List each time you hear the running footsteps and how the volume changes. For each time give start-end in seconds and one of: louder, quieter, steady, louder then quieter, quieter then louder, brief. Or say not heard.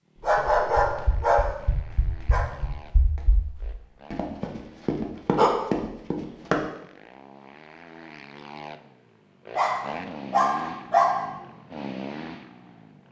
0.2-6.7 quieter then louder.